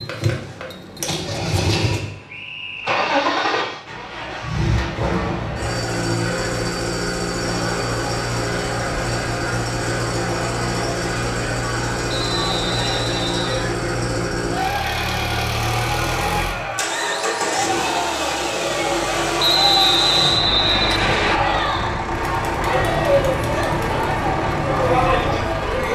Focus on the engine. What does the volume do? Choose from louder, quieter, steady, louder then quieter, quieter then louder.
steady.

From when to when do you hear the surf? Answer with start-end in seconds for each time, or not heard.
not heard.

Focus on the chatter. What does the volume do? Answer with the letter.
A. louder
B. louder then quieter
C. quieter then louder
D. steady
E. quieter
A.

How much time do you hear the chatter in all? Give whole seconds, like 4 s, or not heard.
22 s.